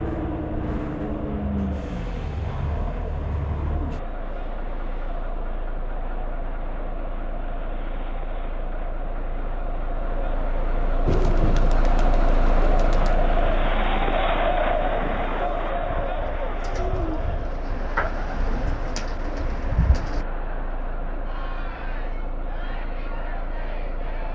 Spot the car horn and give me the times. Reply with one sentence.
You can't hear the car horn here.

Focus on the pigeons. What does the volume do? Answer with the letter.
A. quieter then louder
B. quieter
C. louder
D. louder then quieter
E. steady
A.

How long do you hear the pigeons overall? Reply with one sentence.
You can hear the pigeons for 9 seconds altogether.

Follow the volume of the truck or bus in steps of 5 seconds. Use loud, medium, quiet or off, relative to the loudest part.
loud, medium, loud, medium, medium.